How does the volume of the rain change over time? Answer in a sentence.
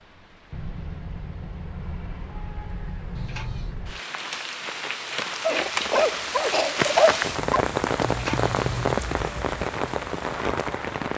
The volume of the rain goes up.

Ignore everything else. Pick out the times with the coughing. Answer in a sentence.
The coughing can be heard from 5.5 to 7.1 s.